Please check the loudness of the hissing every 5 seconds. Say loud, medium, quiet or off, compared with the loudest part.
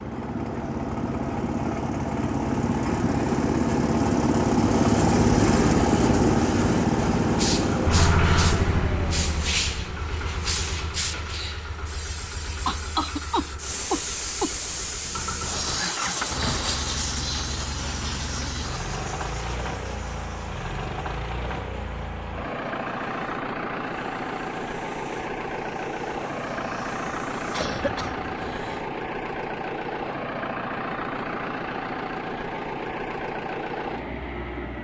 off, loud, loud, loud, quiet, quiet, off.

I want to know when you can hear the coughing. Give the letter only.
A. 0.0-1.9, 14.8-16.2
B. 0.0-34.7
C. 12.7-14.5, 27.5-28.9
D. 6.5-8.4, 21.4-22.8
C.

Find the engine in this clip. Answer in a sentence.
The engine can be heard from 0.0 to 34.7 s.